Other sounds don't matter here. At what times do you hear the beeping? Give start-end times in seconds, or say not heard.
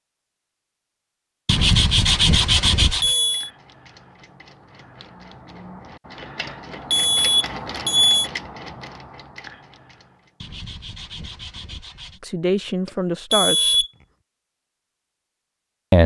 2.5-3.5, 6.5-8.3, 12.8-13.9.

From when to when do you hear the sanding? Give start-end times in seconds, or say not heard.
1.4-3.1, 10.4-12.2.